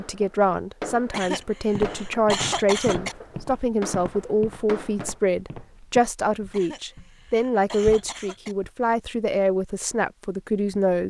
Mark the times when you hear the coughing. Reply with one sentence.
The coughing can be heard from 1.1 to 3.1 s and from 6.5 to 8.6 s.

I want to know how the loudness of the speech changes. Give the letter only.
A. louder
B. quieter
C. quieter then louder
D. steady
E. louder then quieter
D.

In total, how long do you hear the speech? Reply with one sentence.
You can hear the speech for 11 seconds altogether.